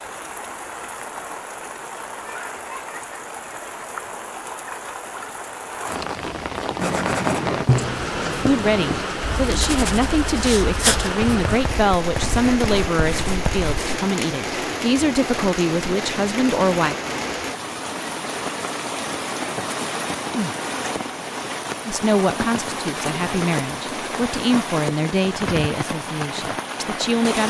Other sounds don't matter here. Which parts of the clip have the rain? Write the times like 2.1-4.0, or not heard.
0.0-27.4.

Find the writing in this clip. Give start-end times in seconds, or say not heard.
6.8-13.7.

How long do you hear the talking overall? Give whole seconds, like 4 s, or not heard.
14 s.